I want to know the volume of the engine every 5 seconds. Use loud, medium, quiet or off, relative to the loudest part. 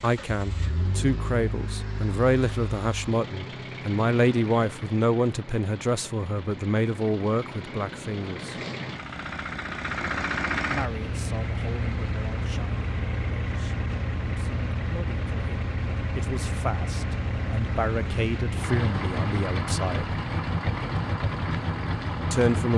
medium, medium, loud, loud, loud.